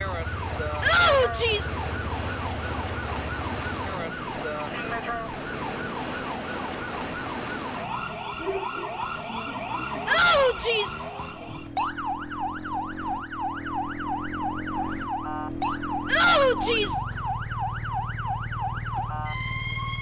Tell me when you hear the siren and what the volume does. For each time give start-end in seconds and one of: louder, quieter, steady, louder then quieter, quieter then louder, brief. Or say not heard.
0.0-19.9 steady.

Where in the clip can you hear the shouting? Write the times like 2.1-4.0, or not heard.
0.8-1.8, 10.1-11.0, 16.1-17.0.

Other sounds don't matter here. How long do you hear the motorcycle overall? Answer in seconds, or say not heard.
20 s.